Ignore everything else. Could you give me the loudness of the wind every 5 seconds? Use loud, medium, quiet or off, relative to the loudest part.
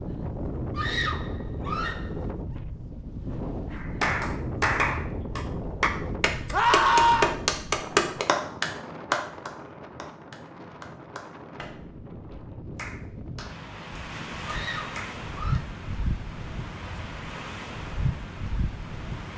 loud, loud, medium, loud.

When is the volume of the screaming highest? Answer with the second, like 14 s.
7 s.